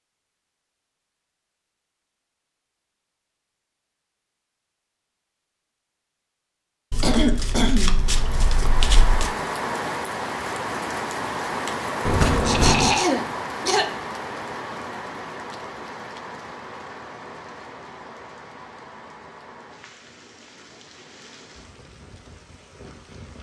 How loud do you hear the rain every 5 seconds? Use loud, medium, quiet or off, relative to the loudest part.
off, loud, loud, medium, quiet.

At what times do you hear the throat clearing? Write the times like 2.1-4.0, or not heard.
7.0-8.1, 12.4-13.8.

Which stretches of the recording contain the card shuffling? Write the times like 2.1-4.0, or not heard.
6.9-9.3, 12.1-12.9.